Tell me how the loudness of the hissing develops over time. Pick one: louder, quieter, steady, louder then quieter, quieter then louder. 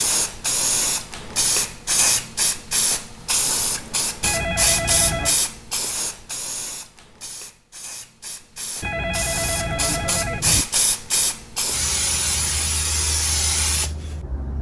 quieter then louder.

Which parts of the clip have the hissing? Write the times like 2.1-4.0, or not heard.
0.0-14.5.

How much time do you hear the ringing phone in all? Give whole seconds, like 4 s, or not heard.
3 s.